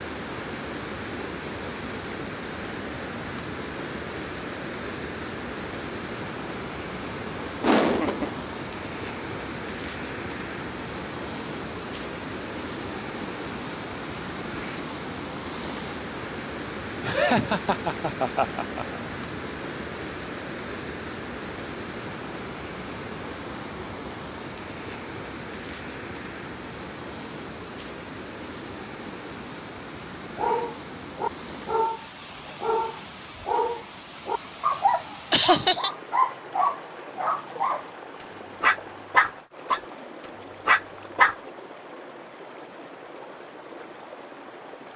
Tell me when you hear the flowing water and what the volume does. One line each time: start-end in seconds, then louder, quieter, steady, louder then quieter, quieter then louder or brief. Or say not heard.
0.0-44.9 quieter.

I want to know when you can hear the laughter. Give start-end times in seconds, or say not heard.
7.6-8.4, 17.0-19.0, 35.3-35.9.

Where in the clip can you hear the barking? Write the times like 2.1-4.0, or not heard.
30.4-37.9, 38.6-39.8, 40.6-41.4.